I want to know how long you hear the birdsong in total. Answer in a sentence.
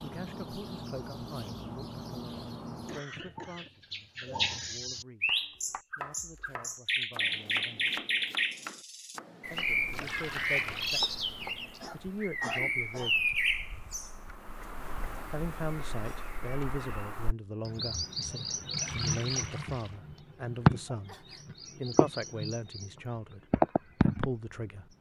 You can hear the birdsong for 24 seconds altogether.